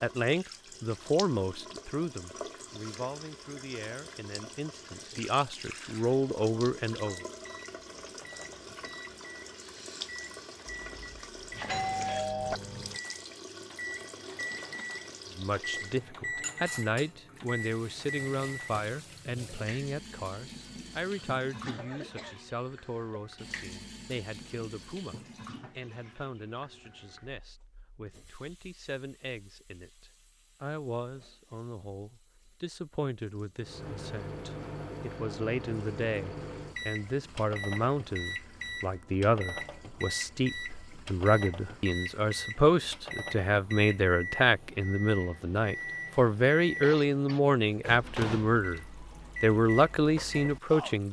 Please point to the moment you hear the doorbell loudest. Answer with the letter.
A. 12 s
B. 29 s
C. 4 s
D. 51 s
A.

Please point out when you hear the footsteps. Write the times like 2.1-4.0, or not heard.
not heard.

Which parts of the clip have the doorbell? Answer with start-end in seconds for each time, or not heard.
10.7-12.6.